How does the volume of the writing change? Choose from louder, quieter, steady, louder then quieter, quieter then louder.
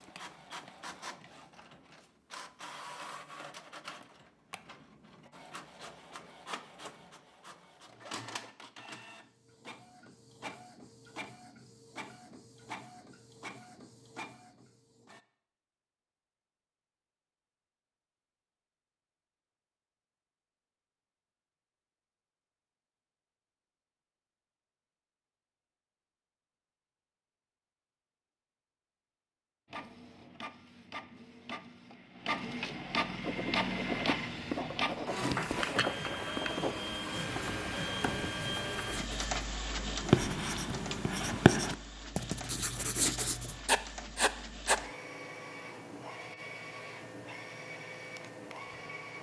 louder.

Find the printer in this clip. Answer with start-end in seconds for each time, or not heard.
0.0-15.2, 29.7-49.1.